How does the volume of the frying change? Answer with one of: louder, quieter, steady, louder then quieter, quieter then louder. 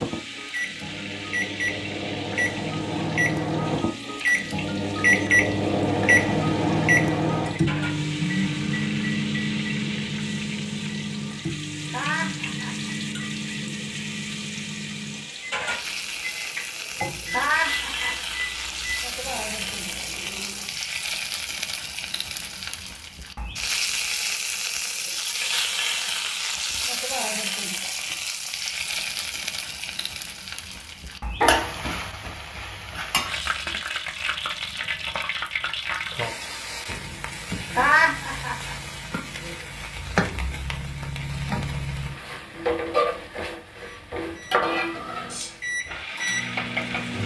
louder.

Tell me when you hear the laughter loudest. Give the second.
38 s.